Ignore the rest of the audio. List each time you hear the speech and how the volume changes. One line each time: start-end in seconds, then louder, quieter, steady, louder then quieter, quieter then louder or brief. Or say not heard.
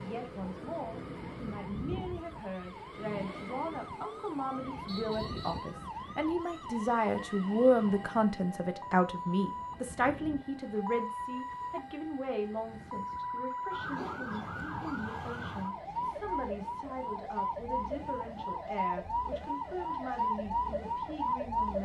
0.0-21.8 louder then quieter.